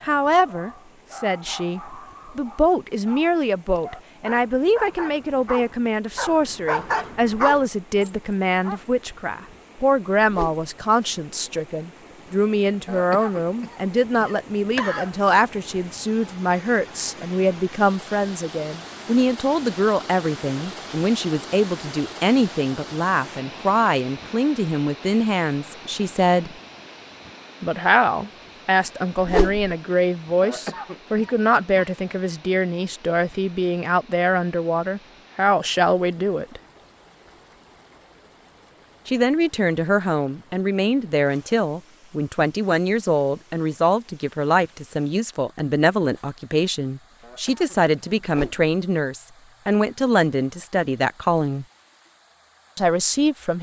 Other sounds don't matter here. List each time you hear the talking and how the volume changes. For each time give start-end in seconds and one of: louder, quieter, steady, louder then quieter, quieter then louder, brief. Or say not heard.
0.0-26.5 steady
27.6-36.6 steady
39.0-51.6 steady
52.8-53.5 brief.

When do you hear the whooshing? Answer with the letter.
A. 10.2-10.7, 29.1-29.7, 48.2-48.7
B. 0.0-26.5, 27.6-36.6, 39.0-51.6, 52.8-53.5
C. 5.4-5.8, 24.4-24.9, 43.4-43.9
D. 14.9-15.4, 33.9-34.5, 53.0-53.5
A.